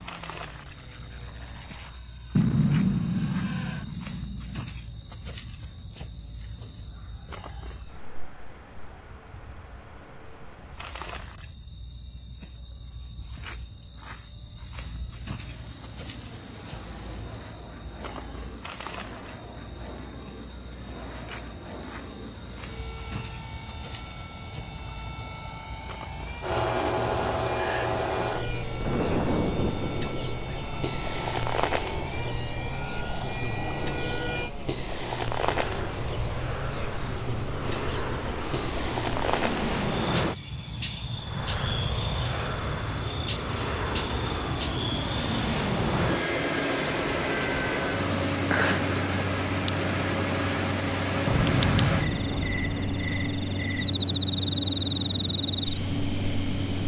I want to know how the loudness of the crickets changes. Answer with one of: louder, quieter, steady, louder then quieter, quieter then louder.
steady.